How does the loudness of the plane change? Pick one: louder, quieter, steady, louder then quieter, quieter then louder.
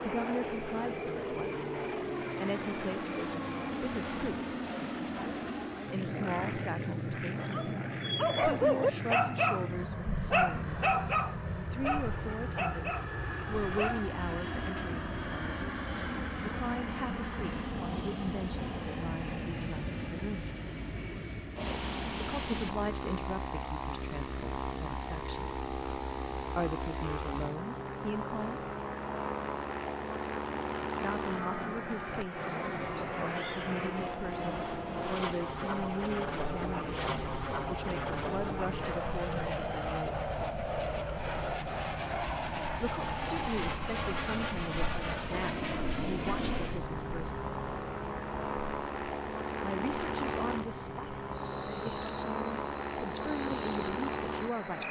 steady.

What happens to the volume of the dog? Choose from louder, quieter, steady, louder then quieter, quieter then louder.
quieter.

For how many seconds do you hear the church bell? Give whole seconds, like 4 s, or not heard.
not heard.